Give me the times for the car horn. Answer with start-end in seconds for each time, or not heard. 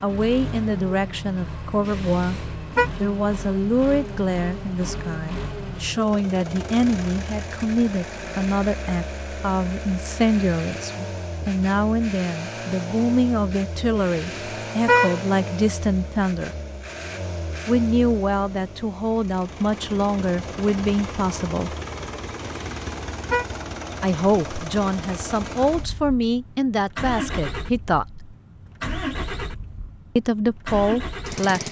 1.9-2.9, 13.9-15.2, 22.4-23.4.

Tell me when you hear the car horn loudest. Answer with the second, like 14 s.
15 s.